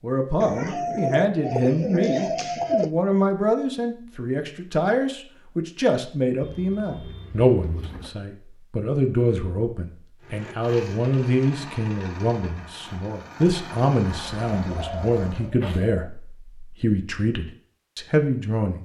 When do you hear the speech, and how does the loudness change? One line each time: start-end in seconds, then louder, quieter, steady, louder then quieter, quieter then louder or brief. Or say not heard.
0.0-18.8 steady.